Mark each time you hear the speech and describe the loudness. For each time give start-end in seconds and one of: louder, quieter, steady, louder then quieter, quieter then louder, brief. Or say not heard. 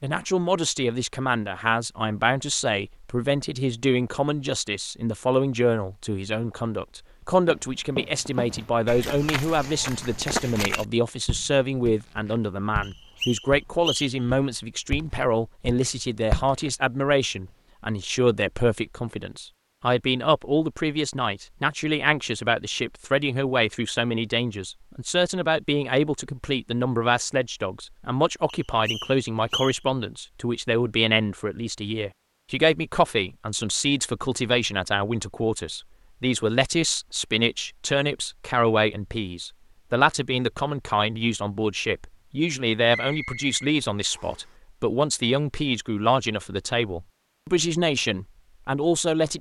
0.0-49.3 steady.